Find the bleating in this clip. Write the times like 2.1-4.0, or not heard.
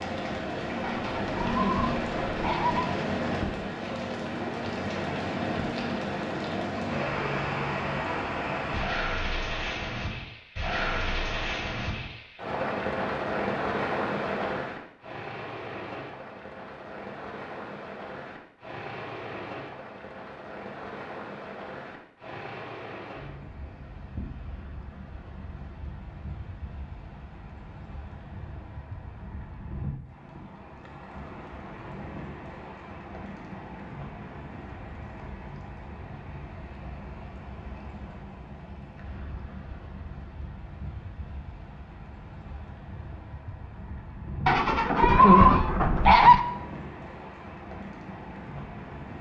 0.8-2.9, 44.5-46.5.